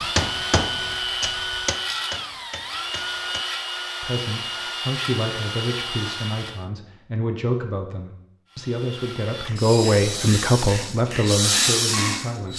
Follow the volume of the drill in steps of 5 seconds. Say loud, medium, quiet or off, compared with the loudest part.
loud, medium, loud.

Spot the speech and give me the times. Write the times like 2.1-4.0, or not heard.
4.0-12.5.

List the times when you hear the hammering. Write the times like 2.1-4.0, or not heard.
0.0-3.5, 9.4-12.4.